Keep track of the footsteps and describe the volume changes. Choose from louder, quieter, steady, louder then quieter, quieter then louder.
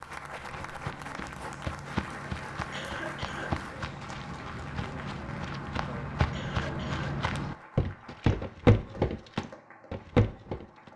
louder.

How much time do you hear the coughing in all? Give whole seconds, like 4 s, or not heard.
2 s.